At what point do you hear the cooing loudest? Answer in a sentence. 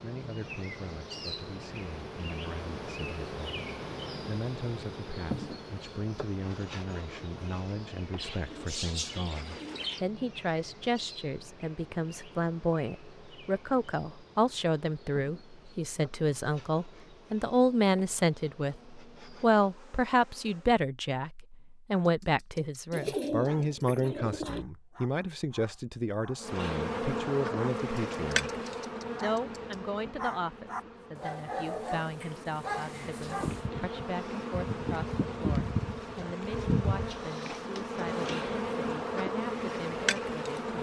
The volume of the cooing peaks at 23 seconds.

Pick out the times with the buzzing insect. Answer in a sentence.
The buzzing insect can be heard from 0.0 to 20.8 s and from 26.4 to 40.7 s.